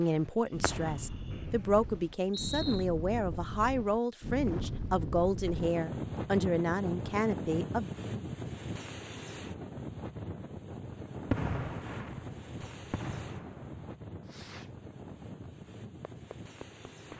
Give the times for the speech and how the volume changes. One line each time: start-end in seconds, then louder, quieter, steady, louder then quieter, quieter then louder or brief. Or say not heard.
0.0-7.9 steady.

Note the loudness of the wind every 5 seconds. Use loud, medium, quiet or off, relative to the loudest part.
loud, loud, medium, medium.